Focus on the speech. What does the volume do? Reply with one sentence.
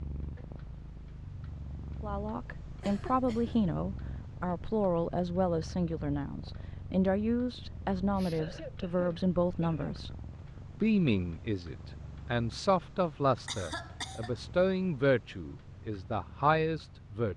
The loudness of the speech stays about the same.